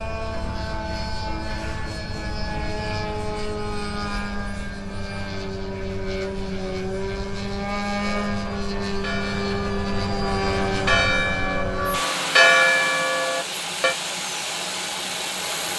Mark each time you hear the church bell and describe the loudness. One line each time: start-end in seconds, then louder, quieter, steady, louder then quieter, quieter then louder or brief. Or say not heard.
8.0-13.9 louder.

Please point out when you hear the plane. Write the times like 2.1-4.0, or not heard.
0.0-15.7.